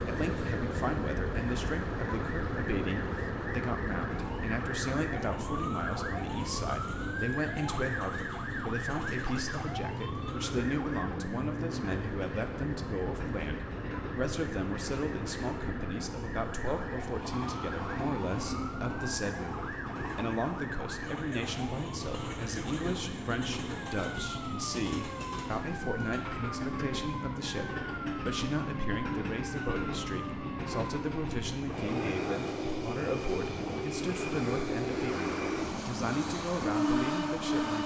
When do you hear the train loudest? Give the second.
37 s.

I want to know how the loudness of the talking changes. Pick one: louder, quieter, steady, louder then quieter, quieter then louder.
steady.